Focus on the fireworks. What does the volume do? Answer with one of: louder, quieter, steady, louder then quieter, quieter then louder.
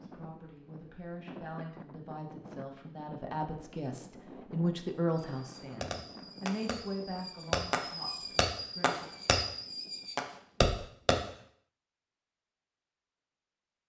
louder.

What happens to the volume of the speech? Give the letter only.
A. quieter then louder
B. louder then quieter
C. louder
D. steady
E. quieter
B.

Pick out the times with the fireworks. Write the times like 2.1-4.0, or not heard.
5.3-11.2.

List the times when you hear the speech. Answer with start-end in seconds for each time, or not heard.
0.0-9.1.